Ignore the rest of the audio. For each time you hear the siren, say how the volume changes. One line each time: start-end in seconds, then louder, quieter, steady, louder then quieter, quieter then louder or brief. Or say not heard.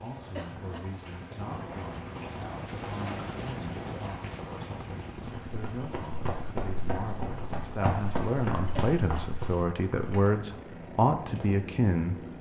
not heard.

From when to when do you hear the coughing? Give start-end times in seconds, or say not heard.
0.3-0.9, 8.8-9.3.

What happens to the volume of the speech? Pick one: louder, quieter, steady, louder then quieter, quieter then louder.
louder.